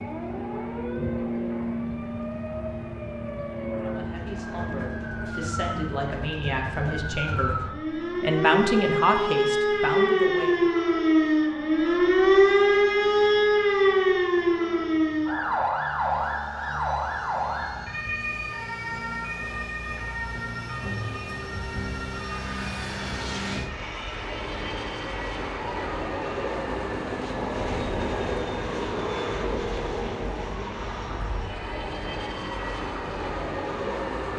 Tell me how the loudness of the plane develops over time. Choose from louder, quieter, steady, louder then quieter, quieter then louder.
quieter then louder.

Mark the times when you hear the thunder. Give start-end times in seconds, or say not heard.
26.6-30.6.